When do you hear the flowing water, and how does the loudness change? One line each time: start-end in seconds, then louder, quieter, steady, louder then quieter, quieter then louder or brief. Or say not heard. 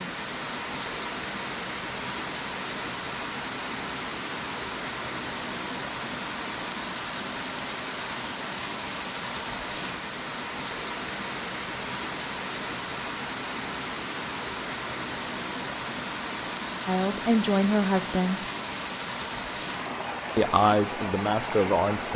0.0-22.1 steady.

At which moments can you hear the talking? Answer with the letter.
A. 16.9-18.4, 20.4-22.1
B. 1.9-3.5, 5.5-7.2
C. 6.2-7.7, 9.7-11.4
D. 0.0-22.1
A.